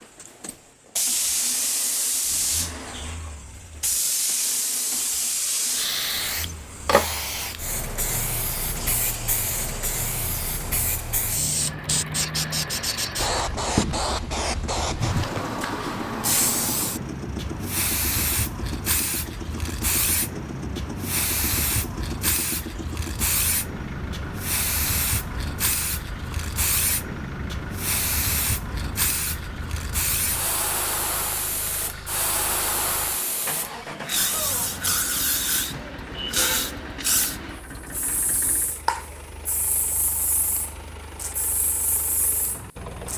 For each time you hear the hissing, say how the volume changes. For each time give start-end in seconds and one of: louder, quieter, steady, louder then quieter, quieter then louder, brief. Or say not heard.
0.0-43.1 steady.